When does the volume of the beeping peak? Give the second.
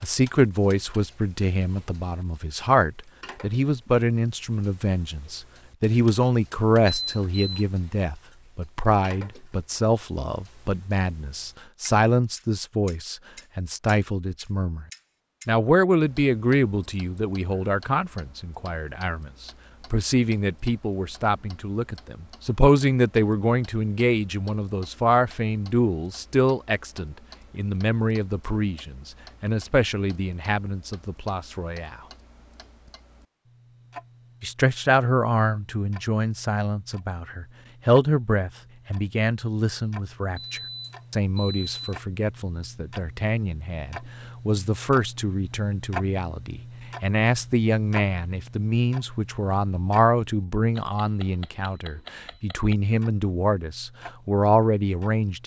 7 s.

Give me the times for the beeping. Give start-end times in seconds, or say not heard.
6.8-7.7, 40.4-42.0.